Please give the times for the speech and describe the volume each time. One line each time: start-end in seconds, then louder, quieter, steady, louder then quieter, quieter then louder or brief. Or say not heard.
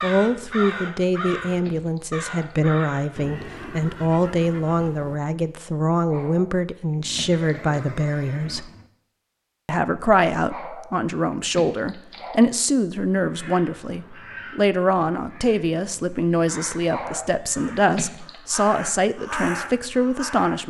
0.0-8.7 steady
9.7-20.6 steady.